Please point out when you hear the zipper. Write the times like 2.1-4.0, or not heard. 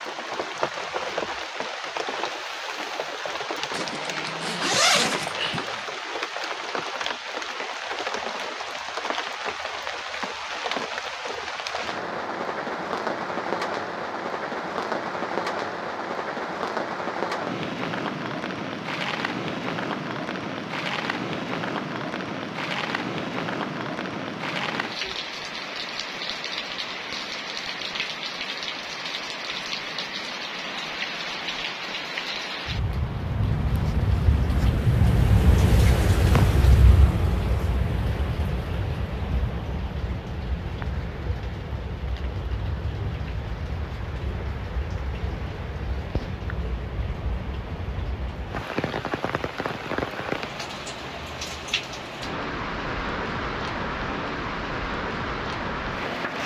3.7-5.8.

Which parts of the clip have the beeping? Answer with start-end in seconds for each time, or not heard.
not heard.